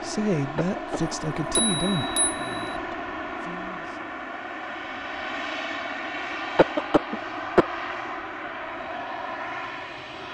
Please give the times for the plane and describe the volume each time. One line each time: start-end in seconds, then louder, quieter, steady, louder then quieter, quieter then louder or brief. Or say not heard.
0.0-10.2 steady.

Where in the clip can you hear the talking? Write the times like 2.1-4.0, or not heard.
0.0-4.0.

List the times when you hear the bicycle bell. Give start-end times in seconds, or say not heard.
1.0-2.8.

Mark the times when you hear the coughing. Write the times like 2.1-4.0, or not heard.
0.6-1.8, 6.5-7.7.